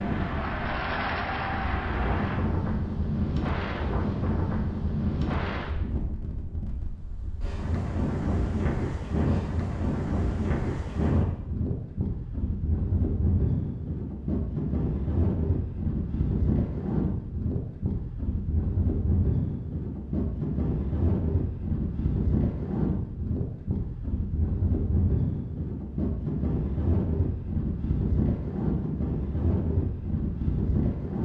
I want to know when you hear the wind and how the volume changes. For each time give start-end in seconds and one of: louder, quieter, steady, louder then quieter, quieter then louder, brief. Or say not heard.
0.0-31.2 steady.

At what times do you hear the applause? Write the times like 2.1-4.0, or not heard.
0.0-2.4.